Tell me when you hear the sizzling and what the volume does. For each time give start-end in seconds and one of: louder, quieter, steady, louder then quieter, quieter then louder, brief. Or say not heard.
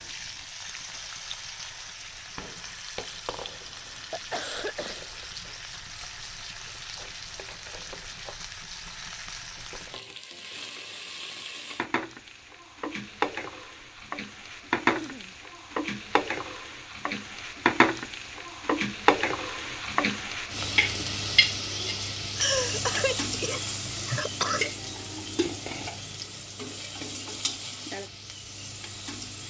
0.0-29.4 louder then quieter.